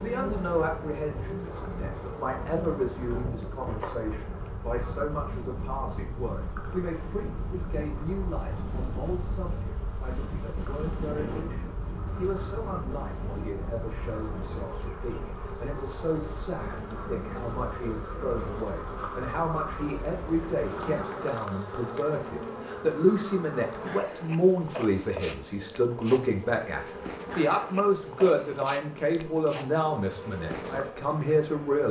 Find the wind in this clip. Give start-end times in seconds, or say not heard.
0.0-21.1.